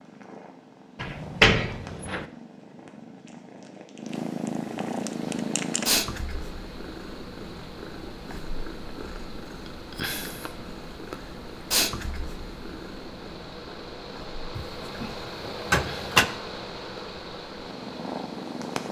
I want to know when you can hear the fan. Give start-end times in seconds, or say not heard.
5.2-18.8.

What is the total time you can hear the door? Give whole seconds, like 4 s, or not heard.
3 s.